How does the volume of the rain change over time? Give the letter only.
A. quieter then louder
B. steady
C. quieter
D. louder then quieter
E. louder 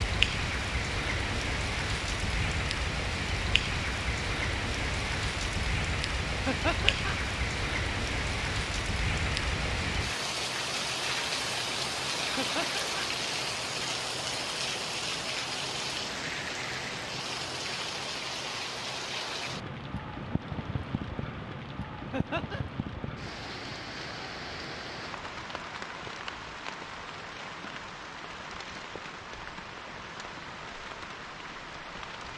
C.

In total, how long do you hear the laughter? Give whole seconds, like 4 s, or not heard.
2 s.